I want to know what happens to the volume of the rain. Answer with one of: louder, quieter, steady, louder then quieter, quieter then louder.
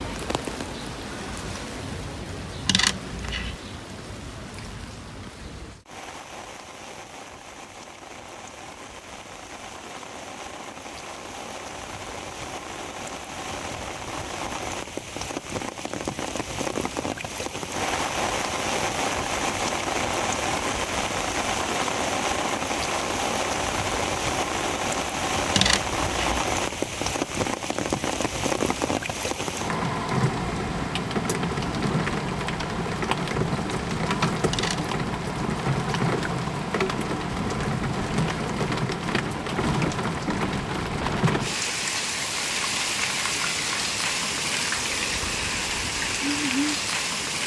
louder.